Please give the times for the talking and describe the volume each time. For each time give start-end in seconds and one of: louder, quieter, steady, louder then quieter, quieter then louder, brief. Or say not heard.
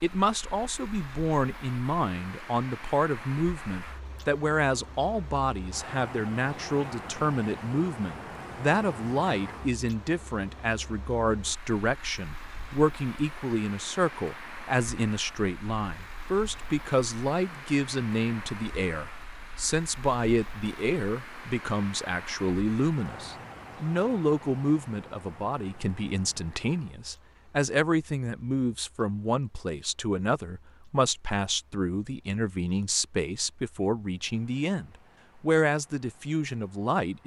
0.0-37.2 steady.